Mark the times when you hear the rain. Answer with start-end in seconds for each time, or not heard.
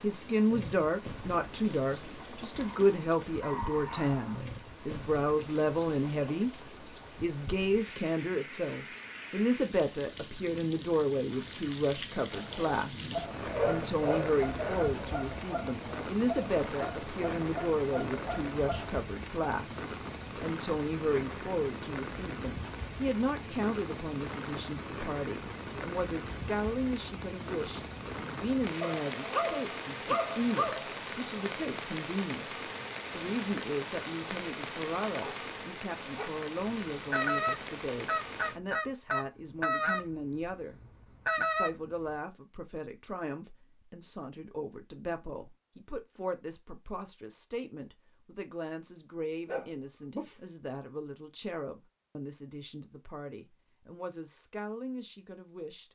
0.0-38.6.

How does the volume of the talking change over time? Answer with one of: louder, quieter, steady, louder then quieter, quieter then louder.
quieter.